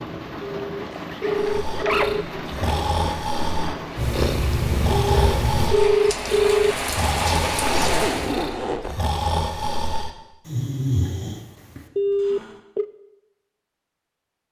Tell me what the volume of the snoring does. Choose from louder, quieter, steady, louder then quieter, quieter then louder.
steady.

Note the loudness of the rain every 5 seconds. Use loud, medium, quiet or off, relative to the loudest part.
medium, loud, off.